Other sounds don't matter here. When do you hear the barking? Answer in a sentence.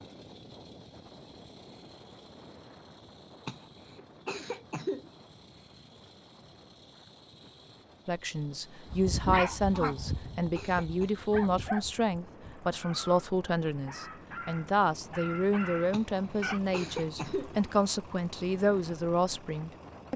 You can hear the barking from 8.9 to 16.6 s.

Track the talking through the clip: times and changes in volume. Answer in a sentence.
The talking can be heard from 8.1 to 20.1 s, at a steady volume.